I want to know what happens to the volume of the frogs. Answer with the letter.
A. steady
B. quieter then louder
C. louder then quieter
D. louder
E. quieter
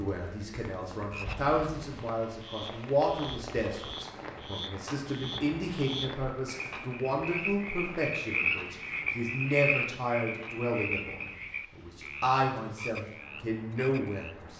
C.